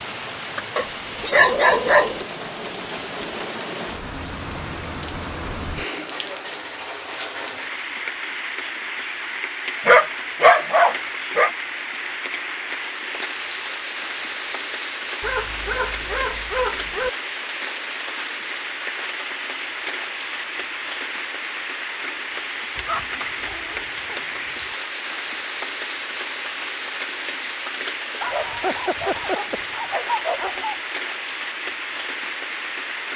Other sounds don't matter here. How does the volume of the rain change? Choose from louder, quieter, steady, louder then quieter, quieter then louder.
steady.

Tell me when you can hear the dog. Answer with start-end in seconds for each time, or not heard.
0.8-2.2, 9.8-11.5, 15.2-17.1, 22.8-24.2, 28.2-30.8.